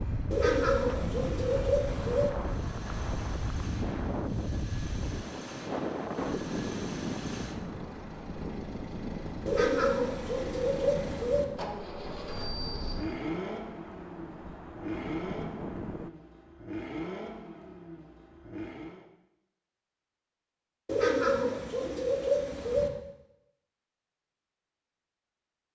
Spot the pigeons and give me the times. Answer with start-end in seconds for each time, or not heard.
0.3-2.3, 9.4-11.4, 20.9-22.9.